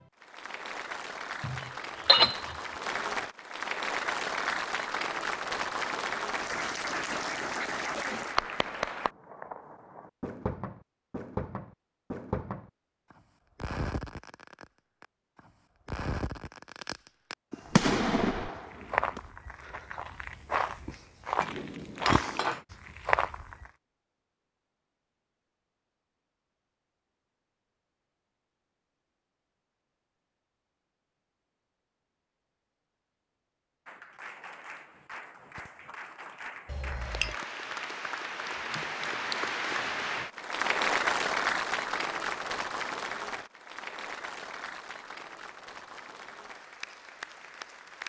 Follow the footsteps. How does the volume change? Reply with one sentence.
The volume of the footsteps goes down, then up.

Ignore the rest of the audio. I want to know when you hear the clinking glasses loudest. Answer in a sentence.
The volume of the clinking glasses peaks at 2 seconds.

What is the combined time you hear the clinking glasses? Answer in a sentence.
The clinking glasses can be heard for 3 seconds in total.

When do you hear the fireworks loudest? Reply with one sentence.
The volume of the fireworks peaks at 18 seconds.